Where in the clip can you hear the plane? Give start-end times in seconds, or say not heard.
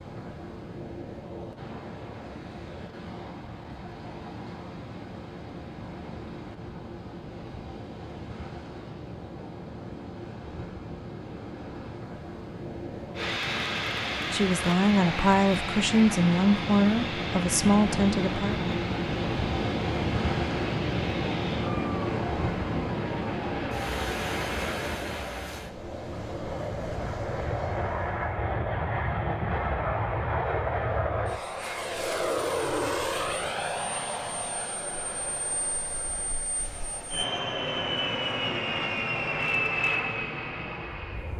13.2-41.3.